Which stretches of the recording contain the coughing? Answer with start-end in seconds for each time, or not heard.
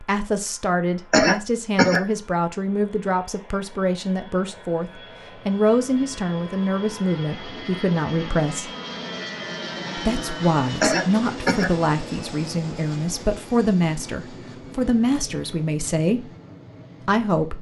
1.1-2.0, 10.8-11.7.